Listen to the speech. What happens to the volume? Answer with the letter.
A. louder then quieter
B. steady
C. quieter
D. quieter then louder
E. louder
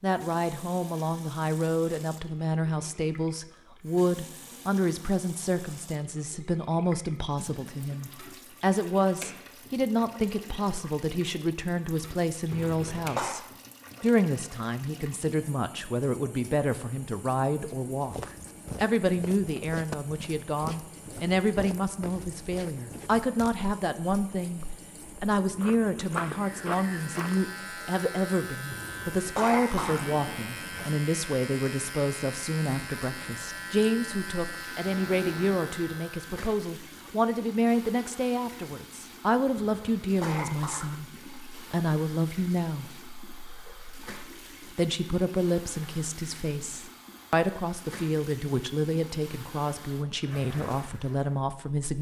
B.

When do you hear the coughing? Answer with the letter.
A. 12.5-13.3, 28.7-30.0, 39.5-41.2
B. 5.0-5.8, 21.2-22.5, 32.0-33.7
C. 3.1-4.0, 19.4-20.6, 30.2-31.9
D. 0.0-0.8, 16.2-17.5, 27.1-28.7
A.